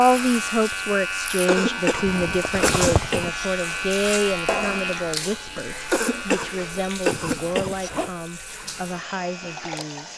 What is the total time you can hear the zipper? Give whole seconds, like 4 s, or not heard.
2 s.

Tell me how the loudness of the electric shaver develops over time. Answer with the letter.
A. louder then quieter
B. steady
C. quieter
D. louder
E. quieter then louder
C.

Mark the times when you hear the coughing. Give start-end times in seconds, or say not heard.
1.4-3.5, 5.9-7.9.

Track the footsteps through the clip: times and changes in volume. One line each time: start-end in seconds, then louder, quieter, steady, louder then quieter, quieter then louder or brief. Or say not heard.
not heard.